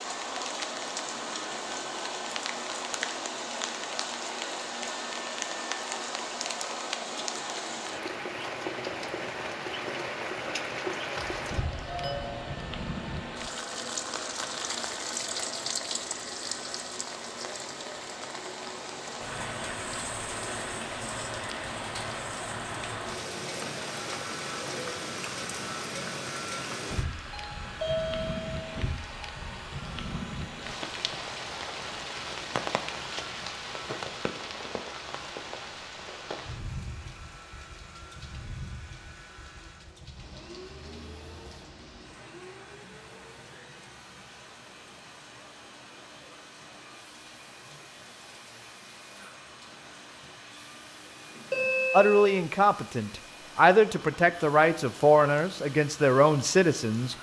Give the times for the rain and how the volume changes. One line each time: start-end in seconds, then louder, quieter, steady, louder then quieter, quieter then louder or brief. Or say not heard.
0.0-57.1 quieter.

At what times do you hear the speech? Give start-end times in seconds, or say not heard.
51.9-57.1.